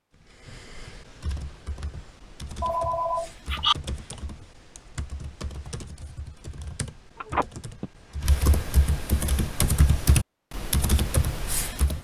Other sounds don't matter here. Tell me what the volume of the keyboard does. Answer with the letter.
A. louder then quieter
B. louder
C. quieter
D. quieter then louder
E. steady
B.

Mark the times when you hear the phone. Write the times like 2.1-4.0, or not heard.
2.6-3.8, 7.2-7.9.